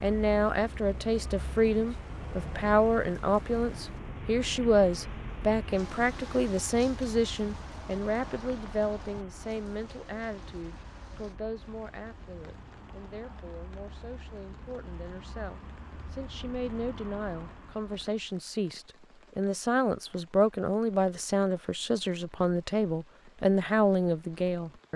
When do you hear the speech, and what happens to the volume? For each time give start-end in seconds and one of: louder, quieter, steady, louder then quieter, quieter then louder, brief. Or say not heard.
0.0-24.9 quieter then louder.